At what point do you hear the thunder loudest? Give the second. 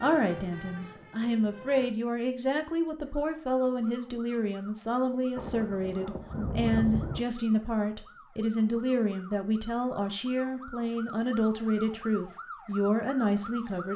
7 s.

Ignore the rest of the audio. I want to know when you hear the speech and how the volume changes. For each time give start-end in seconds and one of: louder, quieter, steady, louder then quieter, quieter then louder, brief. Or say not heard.
0.0-13.9 steady.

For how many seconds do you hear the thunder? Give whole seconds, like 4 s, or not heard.
2 s.